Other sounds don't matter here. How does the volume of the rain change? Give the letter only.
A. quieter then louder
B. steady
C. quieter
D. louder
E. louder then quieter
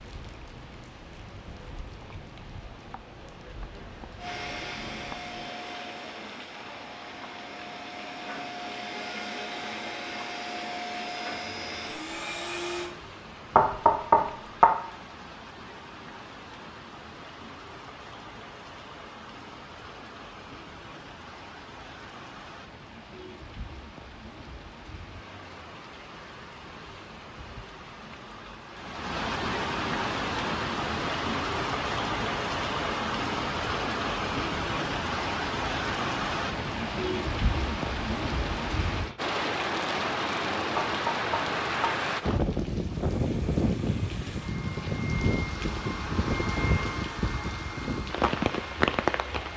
D.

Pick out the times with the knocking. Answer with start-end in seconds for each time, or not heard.
13.6-14.7, 40.8-41.9.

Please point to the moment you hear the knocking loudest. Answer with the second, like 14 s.
14 s.